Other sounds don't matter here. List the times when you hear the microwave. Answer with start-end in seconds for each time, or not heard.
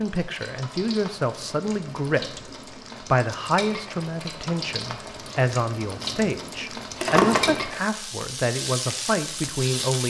not heard.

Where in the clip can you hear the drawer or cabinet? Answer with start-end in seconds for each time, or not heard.
7.0-7.7.